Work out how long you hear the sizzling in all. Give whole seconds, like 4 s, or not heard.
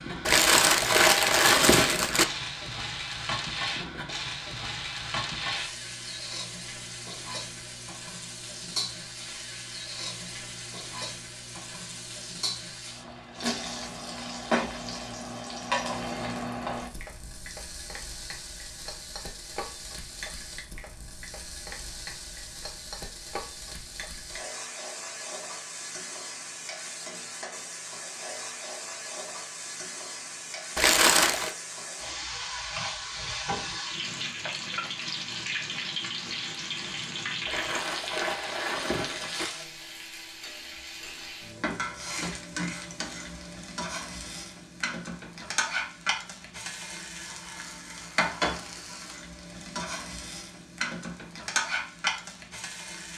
53 s.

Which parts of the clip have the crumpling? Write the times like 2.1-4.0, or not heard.
0.2-2.2, 30.8-31.6, 37.5-39.5.